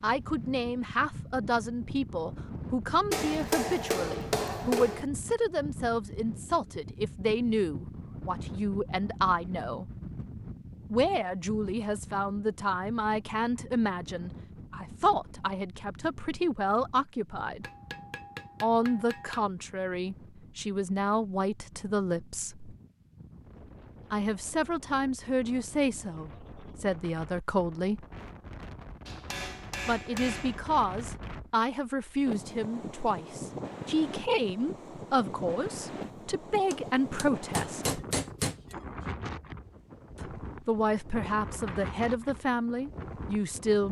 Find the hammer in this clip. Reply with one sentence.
You can hear the hammer from 3.1 to 5.0 s, from 17.6 to 19.5 s, from 29.1 to 30.6 s and from 36.7 to 38.8 s.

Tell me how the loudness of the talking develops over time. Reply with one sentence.
The volume of the talking stays about the same.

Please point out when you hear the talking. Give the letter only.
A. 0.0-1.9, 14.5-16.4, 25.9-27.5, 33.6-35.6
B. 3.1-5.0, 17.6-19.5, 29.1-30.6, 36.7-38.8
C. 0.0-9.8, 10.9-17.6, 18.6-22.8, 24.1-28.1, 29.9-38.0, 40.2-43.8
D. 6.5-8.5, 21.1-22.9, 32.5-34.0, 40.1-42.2
C.